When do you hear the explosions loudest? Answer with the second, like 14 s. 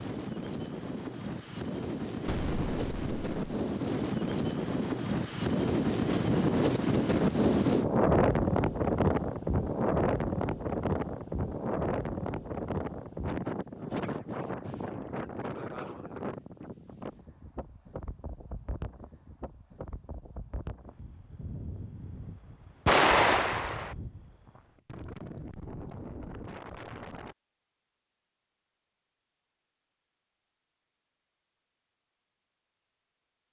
23 s.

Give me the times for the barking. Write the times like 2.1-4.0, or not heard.
not heard.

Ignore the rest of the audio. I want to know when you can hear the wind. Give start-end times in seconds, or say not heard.
0.0-27.4.